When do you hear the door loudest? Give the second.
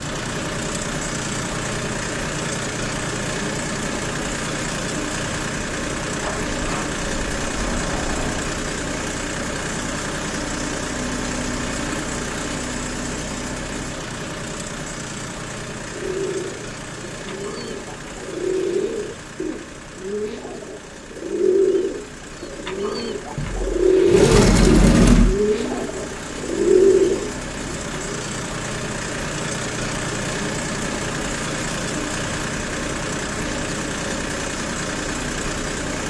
25 s.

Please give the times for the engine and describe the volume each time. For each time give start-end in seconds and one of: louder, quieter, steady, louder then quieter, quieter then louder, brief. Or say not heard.
0.0-36.0 quieter then louder.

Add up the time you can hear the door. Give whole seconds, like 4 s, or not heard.
4 s.